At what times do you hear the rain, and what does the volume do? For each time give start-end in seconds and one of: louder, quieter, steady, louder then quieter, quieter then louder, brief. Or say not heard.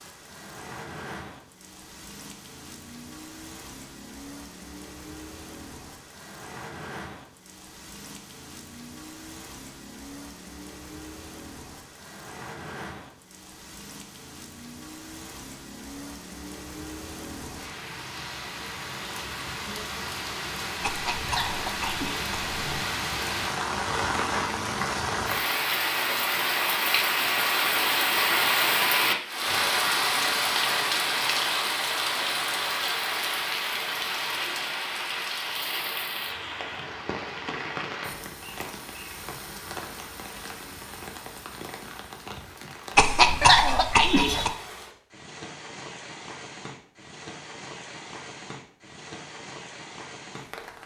0.0-50.8 louder then quieter.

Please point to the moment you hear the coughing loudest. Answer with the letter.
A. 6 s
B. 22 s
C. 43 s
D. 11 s
C.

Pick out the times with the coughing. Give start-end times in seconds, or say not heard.
20.8-22.9, 43.0-44.5.